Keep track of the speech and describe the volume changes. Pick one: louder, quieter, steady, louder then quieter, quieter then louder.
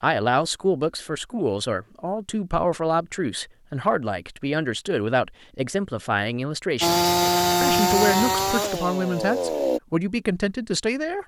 steady.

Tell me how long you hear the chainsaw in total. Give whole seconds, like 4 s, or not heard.
3 s.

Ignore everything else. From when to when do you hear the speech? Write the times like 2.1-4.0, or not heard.
0.0-11.2.